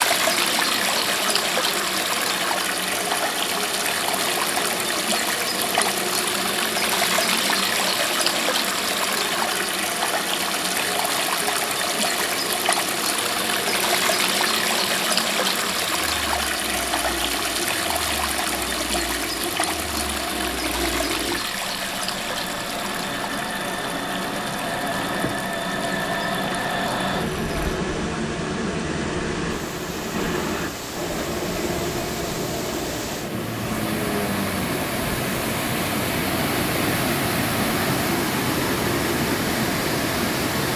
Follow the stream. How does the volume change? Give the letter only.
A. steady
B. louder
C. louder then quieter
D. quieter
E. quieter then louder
E.